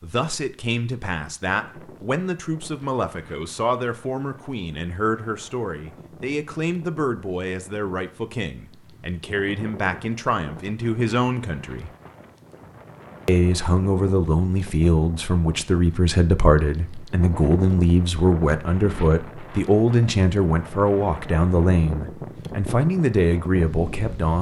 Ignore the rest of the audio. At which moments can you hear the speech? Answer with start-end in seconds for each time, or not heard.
0.0-11.9, 13.2-24.3.